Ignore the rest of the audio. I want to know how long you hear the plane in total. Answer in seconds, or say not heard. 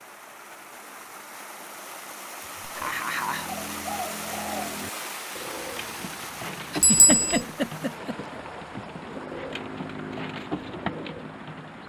3 s.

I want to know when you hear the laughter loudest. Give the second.
7 s.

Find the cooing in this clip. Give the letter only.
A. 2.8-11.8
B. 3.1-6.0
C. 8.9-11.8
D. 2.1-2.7
A.